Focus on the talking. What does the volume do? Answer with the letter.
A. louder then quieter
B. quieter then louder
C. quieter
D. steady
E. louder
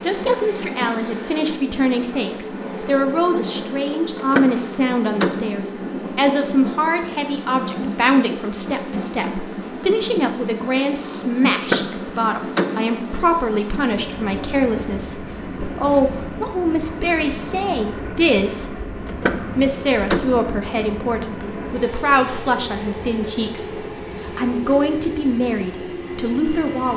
D.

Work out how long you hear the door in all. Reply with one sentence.
The door can be heard for 4 seconds in total.